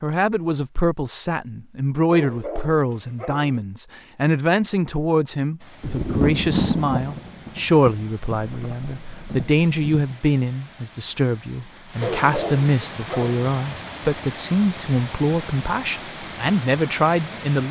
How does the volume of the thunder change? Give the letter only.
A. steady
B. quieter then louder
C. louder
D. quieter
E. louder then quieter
D.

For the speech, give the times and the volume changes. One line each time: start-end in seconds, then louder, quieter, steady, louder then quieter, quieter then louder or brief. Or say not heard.
0.0-17.6 steady.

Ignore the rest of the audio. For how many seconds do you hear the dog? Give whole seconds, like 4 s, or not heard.
3 s.